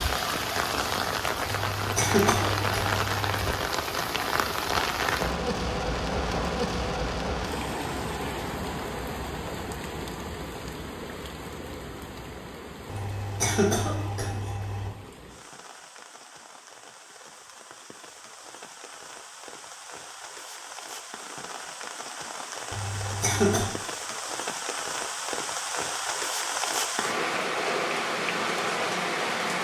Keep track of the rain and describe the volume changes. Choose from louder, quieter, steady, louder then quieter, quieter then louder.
quieter then louder.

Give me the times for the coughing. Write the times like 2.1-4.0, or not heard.
1.4-3.5, 12.8-14.9, 22.7-23.7.